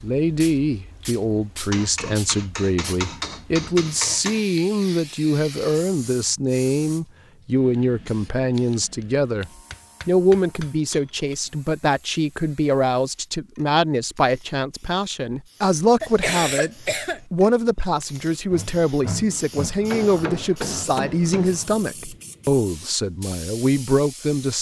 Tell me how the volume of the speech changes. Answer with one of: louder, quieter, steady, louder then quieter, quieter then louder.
steady.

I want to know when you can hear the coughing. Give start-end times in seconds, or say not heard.
16.0-17.2.